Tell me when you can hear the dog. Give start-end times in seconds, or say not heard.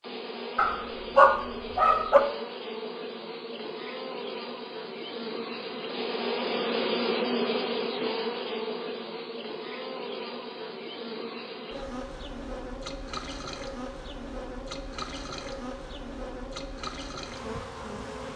0.6-2.2.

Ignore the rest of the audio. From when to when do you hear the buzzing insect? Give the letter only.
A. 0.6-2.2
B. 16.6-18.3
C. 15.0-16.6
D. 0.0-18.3
D.